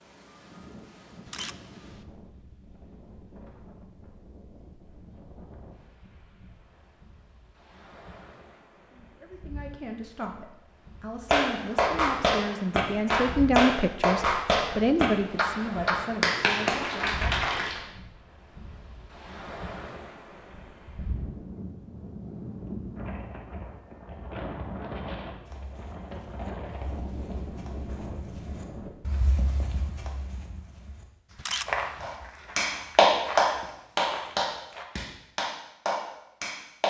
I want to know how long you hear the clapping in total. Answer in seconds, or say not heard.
11 s.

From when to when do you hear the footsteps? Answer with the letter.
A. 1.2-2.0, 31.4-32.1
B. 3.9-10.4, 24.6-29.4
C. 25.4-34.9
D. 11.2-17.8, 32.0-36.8
C.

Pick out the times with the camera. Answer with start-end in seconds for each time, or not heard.
1.2-2.0, 31.4-32.1.